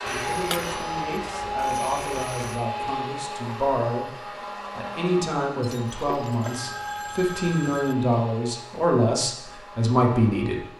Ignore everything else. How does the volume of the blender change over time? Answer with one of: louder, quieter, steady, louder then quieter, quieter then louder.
quieter.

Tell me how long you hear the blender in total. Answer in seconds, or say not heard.
11 s.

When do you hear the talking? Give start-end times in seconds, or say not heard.
0.0-10.6.